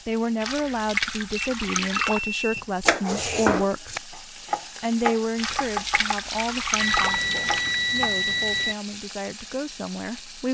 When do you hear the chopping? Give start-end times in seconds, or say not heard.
2.8-8.2.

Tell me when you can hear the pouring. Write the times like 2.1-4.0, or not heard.
0.4-2.2, 5.3-7.8.